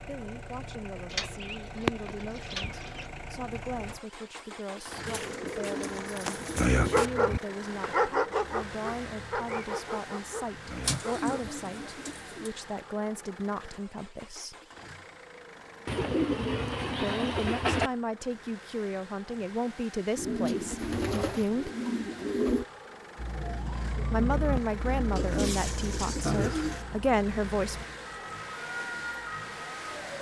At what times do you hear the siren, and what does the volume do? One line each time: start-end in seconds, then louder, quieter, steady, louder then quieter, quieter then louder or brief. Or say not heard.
23.1-30.1 quieter then louder.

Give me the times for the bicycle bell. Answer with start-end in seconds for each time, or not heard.
not heard.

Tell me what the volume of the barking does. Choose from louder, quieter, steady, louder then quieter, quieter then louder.
quieter.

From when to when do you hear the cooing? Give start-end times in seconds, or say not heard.
1.1-3.0, 5.0-7.1, 10.8-12.5, 15.8-17.9, 20.1-22.6, 25.1-26.9.